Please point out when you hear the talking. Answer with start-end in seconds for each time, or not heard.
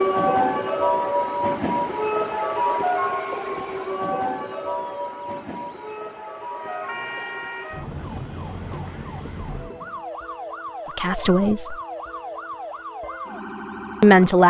10.9-11.8, 14.0-14.4.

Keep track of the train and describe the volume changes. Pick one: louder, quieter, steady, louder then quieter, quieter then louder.
quieter.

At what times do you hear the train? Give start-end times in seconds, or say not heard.
0.0-10.1.